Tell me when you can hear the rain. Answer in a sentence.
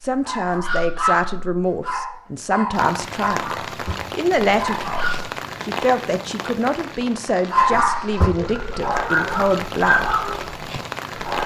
You can hear the rain from 2.7 to 11.4 s.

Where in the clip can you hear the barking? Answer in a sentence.
You can hear the barking from 0.1 to 5.3 s and from 7.5 to 11.4 s.